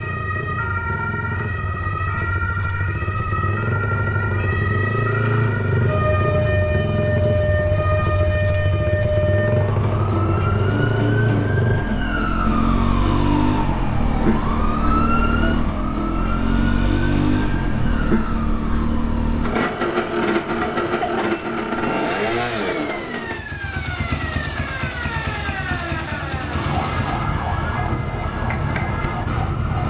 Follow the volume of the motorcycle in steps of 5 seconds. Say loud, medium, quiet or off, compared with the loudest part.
medium, loud, loud, loud, loud, medium.